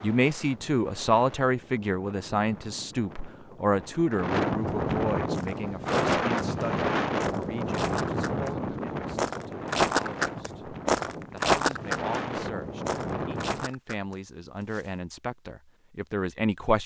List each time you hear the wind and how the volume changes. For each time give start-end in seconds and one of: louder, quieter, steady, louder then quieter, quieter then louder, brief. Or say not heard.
0.0-13.7 louder then quieter.